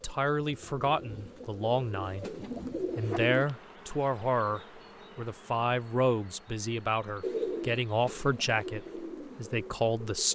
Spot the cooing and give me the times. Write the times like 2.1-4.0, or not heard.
0.0-3.5, 7.2-10.2.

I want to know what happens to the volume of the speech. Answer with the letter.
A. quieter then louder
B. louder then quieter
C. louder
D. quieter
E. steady
E.